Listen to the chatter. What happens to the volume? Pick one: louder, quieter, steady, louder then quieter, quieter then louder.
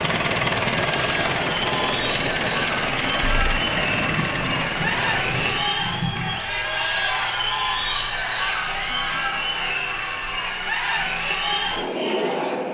steady.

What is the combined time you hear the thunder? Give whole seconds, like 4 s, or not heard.
3 s.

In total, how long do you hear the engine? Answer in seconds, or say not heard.
6 s.